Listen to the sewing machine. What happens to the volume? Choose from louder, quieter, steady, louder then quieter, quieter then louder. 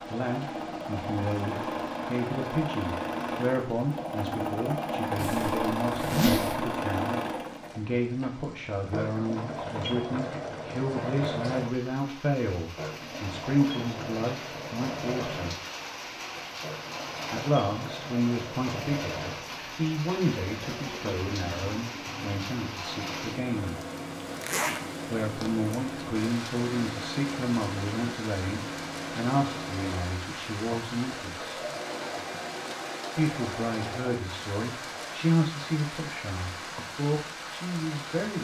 quieter.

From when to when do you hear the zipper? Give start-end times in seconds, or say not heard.
5.2-6.8, 24.4-24.8.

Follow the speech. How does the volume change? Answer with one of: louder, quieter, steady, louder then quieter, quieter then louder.
steady.